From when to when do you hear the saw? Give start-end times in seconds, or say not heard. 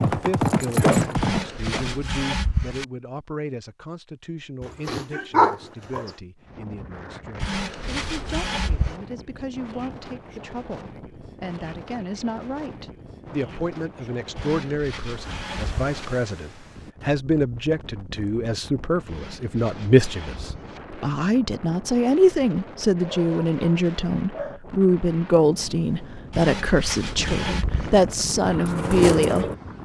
1.1-2.9, 7.4-8.9, 14.3-16.1, 19.1-20.8, 26.3-27.9.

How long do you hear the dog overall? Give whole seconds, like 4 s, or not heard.
3 s.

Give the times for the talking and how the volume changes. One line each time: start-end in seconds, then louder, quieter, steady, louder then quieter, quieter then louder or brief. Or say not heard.
0.1-29.8 louder.